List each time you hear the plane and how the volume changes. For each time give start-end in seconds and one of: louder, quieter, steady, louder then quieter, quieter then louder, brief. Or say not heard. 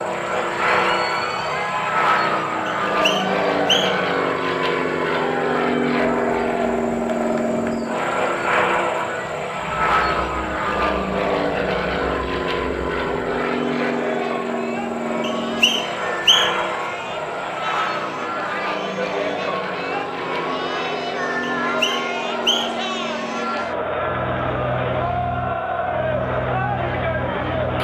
0.0-27.8 quieter.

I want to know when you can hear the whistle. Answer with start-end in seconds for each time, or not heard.
2.6-4.1, 15.2-16.7, 21.6-22.9.